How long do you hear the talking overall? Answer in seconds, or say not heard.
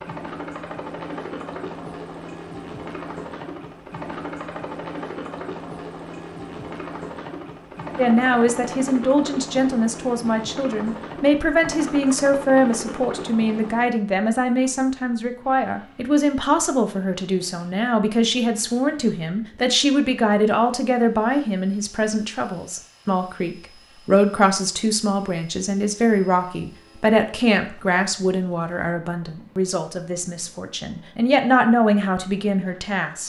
25 s.